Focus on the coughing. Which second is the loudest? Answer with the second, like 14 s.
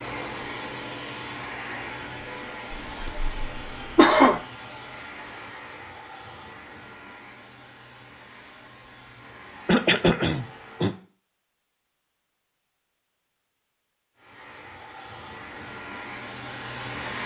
4 s.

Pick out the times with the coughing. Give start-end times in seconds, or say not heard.
2.7-4.4, 9.7-10.9.